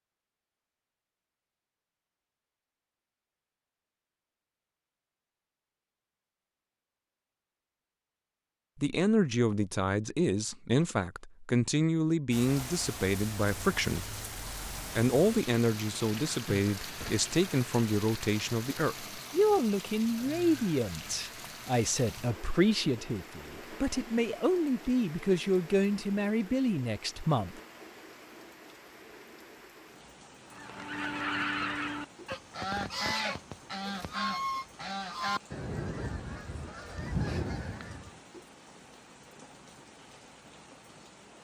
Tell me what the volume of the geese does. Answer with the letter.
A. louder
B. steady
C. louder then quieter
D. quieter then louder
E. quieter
B.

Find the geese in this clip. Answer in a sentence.
The geese can be heard from 30.5 to 38.1 s.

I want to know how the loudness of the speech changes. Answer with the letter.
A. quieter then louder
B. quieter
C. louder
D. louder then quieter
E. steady
E.